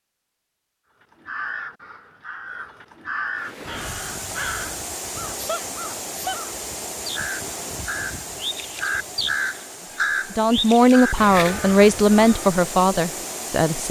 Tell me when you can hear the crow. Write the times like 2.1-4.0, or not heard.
1.0-12.6.